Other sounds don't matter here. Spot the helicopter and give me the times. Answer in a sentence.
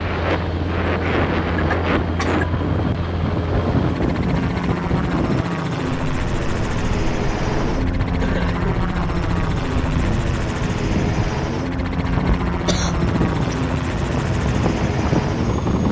You can hear the helicopter from 0.0 to 15.8 s.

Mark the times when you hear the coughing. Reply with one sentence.
You can hear the coughing from 1.6 to 2.5 s, from 8.2 to 8.8 s and from 12.7 to 13.6 s.